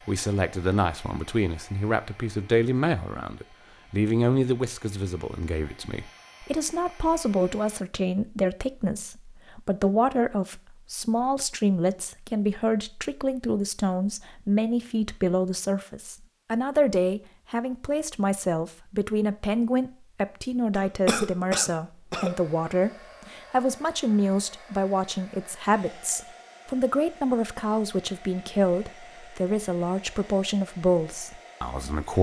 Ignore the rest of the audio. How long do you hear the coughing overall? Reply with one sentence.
The coughing can be heard for 2 seconds in total.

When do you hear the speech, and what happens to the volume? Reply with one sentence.
You can hear the speech from 0.1 to 32.1 s, at a steady volume.